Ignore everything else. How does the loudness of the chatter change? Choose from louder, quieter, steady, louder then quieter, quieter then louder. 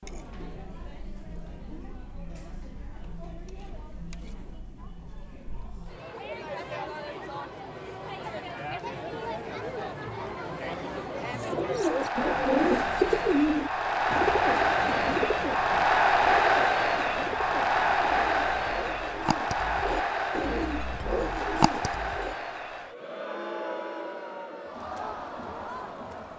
louder then quieter.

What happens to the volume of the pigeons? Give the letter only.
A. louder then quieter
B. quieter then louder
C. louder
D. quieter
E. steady
B.